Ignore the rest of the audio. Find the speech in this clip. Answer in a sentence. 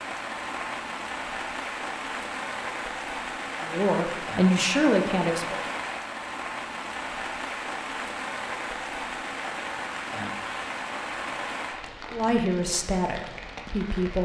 You can hear the speech from 3.6 to 5.6 s and from 12.1 to 14.1 s.